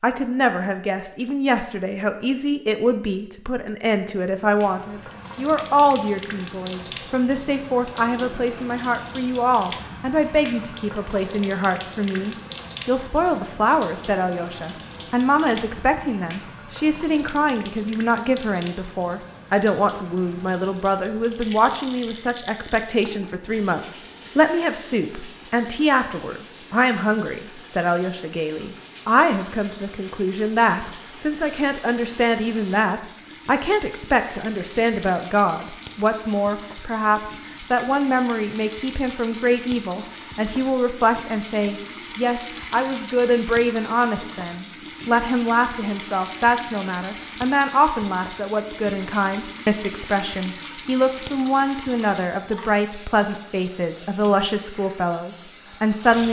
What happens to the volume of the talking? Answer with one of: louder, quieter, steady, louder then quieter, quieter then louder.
steady.